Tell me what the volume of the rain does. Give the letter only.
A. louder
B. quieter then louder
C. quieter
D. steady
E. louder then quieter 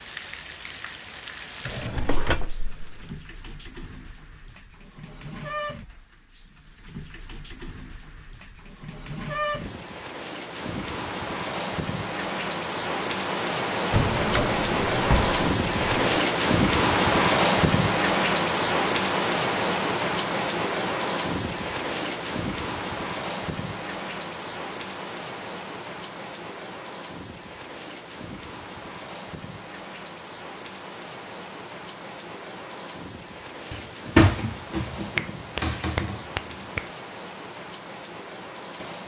E.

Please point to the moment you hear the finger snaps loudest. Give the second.
35 s.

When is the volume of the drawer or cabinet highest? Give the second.
34 s.